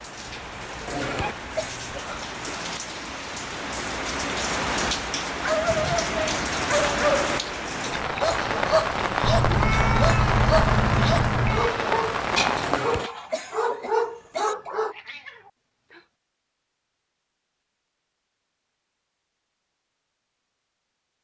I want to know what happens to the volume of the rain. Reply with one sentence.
The volume of the rain goes up.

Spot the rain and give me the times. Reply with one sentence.
The rain can be heard from 0.0 to 12.8 s.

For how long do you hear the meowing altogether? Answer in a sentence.
You can hear the meowing for 6 seconds altogether.